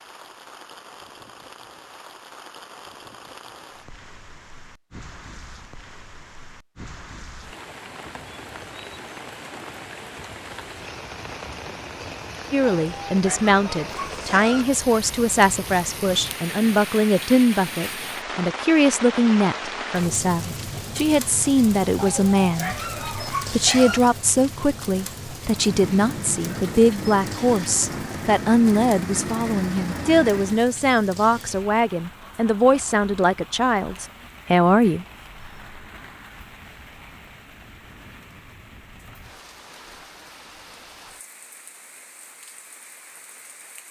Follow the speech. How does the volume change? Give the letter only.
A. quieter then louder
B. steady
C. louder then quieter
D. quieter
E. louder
B.